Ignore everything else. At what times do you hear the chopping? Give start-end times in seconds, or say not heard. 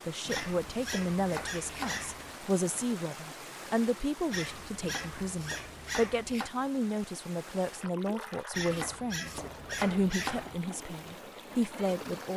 0.2-2.0, 4.8-6.5, 8.7-10.6.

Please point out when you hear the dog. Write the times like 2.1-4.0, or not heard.
0.2-2.4, 4.3-6.3, 8.5-10.4.